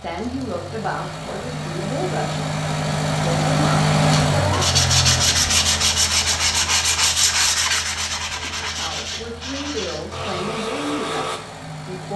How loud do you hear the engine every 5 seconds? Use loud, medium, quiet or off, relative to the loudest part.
loud, medium, quiet.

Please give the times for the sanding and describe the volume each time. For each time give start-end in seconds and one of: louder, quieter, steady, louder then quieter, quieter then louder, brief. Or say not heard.
4.5-11.4 quieter.